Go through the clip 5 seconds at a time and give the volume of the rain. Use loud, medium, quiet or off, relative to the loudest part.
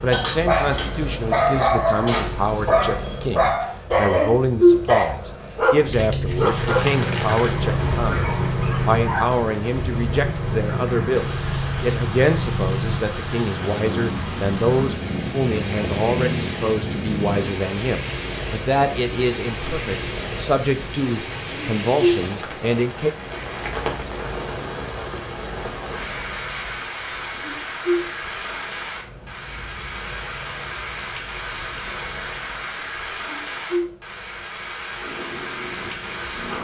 off, loud, loud, loud, loud, loud, loud, loud.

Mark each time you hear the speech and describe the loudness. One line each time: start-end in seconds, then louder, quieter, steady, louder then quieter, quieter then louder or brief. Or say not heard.
0.0-23.1 steady.